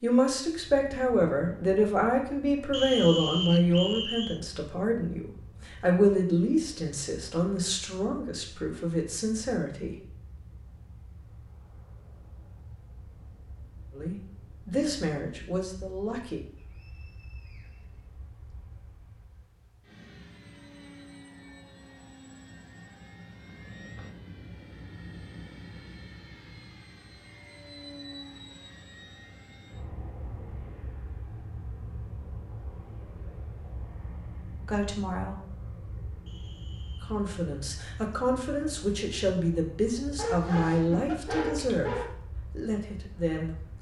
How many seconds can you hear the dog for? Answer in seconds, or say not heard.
2 s.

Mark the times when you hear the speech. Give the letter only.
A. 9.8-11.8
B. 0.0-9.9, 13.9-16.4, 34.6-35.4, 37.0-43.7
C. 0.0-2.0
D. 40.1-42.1
B.